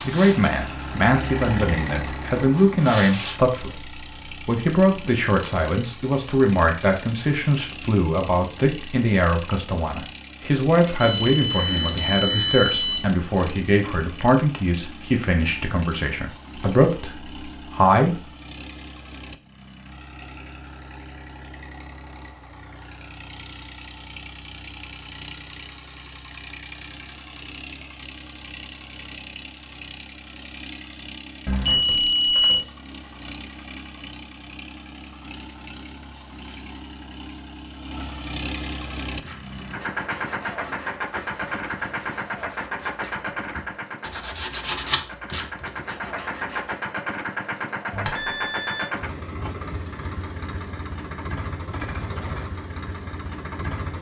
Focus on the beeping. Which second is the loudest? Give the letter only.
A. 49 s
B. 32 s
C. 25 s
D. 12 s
D.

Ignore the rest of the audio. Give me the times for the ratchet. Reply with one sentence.
The ratchet can't be heard in this clip.